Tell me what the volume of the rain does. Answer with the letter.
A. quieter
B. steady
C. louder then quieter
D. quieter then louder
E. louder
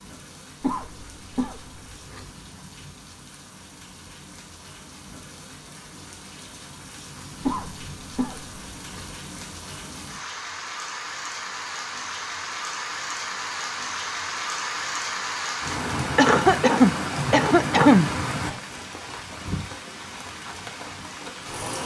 E.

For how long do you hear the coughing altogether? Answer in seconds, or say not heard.
5 s.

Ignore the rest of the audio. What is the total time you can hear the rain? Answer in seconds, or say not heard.
22 s.